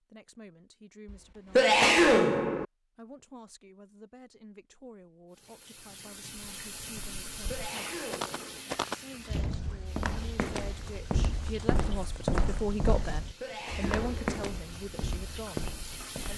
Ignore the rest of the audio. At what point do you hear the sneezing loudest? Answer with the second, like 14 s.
2 s.